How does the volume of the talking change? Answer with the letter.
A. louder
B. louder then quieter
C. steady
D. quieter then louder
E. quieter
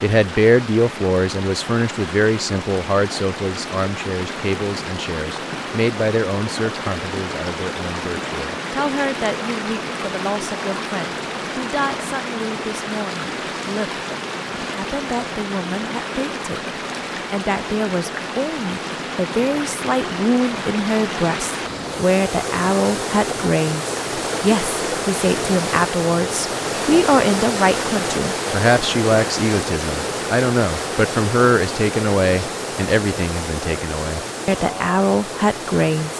D.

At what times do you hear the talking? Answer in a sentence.
The talking can be heard from 0.0 to 16.6 s and from 17.3 to 36.1 s.